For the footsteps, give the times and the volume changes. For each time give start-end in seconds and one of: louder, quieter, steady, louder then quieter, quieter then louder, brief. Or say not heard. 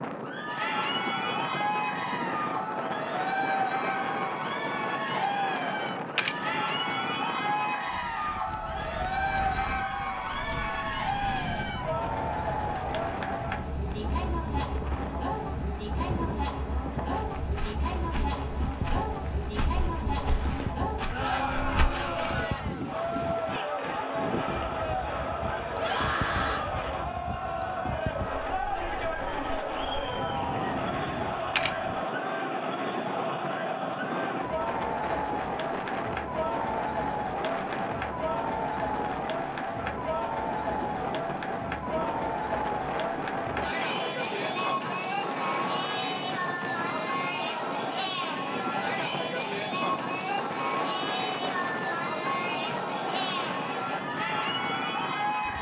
17.1-22.4 louder.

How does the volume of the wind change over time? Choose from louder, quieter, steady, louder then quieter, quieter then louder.
steady.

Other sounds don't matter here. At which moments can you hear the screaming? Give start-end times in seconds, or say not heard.
25.7-26.6.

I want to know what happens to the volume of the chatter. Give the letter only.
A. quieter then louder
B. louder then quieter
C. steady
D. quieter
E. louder
C.